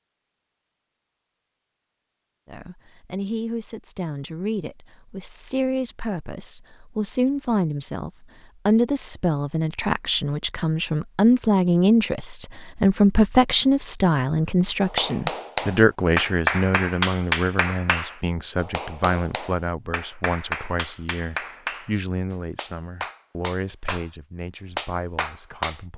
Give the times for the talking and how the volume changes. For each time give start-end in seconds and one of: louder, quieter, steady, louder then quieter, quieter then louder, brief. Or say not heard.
2.5-25.9 louder then quieter.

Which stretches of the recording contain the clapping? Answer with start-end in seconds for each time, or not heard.
14.8-24.1, 24.8-25.8.